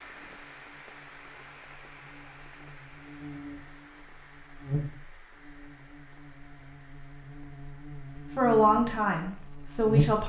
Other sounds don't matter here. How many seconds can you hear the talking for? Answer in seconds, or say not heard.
2 s.